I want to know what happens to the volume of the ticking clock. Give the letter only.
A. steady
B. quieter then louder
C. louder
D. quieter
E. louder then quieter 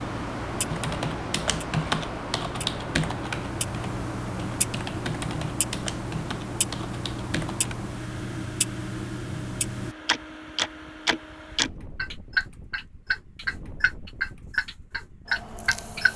C.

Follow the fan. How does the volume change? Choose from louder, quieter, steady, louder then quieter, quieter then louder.
quieter.